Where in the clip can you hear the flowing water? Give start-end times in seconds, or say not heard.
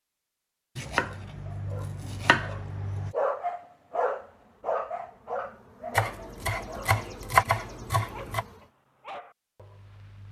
not heard.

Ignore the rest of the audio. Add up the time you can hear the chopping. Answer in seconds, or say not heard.
5 s.